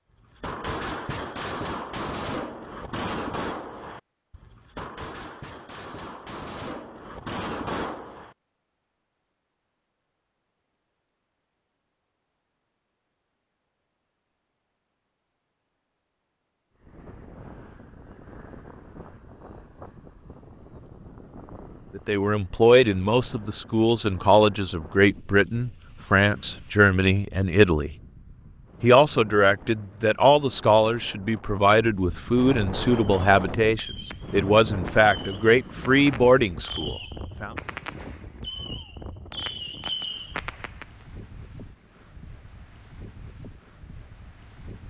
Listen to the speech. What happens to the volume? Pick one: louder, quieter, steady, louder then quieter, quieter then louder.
steady.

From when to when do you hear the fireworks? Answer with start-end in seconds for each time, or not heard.
0.3-8.3, 32.9-40.9.